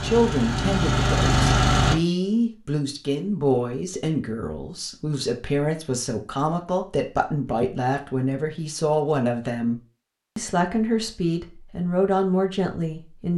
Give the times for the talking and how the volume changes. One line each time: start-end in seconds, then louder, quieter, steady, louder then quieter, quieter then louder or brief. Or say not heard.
0.0-13.3 steady.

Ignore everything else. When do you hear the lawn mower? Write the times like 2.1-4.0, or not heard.
0.0-1.9.